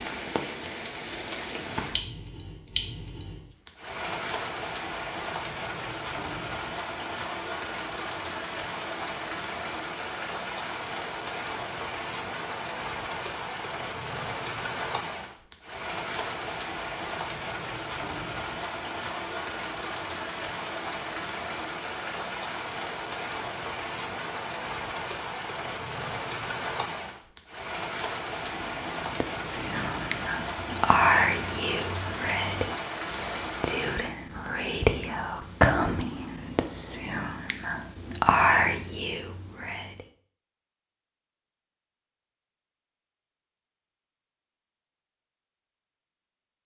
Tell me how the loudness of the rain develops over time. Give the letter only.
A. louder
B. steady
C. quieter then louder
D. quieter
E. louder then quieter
B.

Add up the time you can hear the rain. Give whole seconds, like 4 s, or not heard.
34 s.